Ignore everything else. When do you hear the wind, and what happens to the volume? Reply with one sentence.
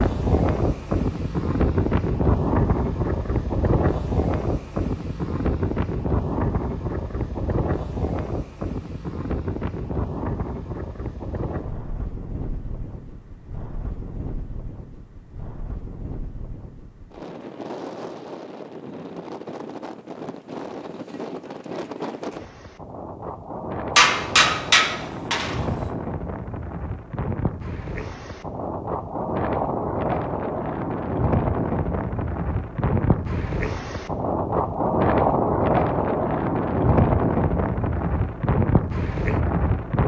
You can hear the wind from 0.0 to 40.0 s, getting quieter then louder.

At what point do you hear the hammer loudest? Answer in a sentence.
The volume of the hammer peaks at 24 seconds.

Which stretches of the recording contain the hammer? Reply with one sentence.
The hammer can be heard from 23.9 to 25.6 s.